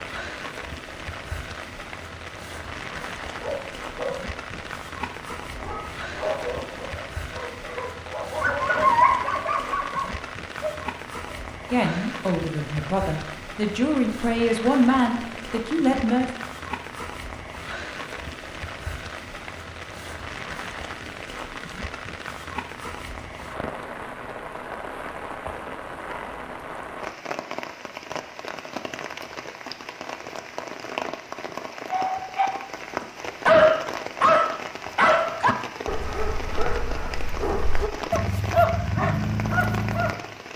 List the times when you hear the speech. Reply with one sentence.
The speech can be heard from 11.7 to 16.3 s.